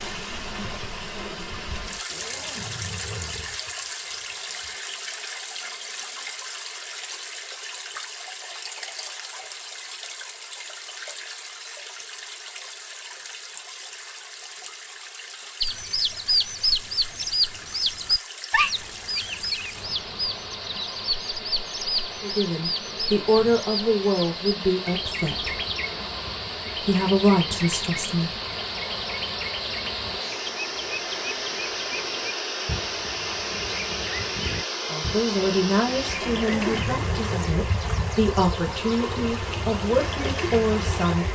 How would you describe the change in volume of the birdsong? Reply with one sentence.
The loudness of the birdsong goes down.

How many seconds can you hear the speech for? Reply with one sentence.
The speech can be heard for 11 seconds in total.